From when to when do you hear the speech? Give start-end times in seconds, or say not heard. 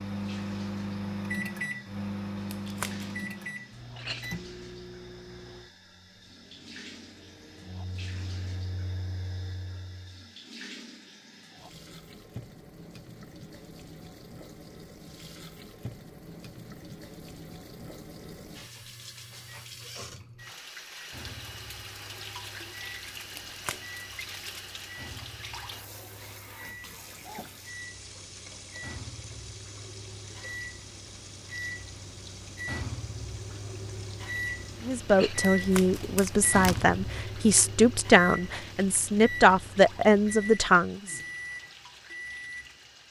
34.8-41.2.